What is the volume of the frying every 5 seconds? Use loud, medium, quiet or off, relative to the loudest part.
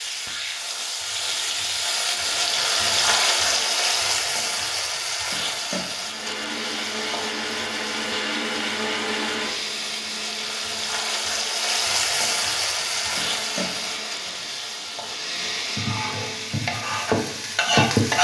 loud, medium, loud, loud.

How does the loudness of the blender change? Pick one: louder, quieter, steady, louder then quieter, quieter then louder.
quieter then louder.